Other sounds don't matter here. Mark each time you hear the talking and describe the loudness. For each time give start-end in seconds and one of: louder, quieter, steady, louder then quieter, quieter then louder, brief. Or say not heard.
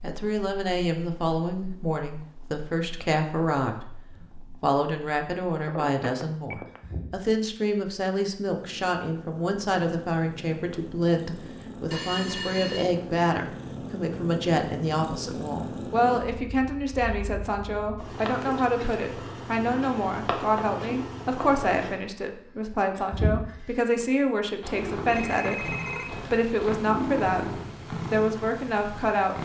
0.0-29.3 steady.